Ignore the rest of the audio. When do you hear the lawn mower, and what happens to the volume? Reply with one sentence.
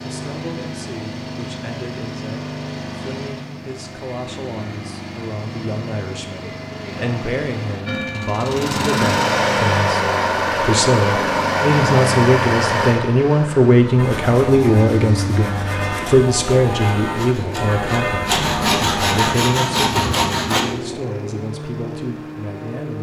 You can hear the lawn mower from 0.0 to 22.9 s, getting louder then quieter.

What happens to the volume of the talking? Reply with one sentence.
The volume of the talking goes up, then down.